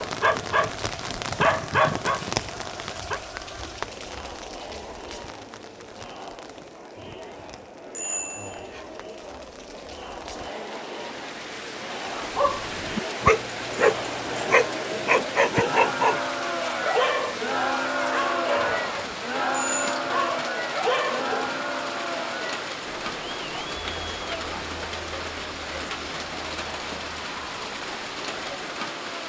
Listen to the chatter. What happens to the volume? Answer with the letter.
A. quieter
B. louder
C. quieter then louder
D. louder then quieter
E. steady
D.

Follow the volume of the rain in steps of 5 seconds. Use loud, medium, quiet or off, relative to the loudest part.
loud, quiet, loud, loud, loud, loud.